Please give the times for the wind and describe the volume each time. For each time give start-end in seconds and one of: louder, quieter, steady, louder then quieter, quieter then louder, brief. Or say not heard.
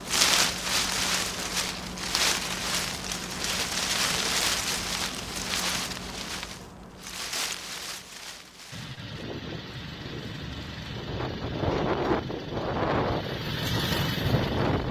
0.0-14.8 quieter then louder.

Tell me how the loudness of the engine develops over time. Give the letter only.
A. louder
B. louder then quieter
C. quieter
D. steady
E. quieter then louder
A.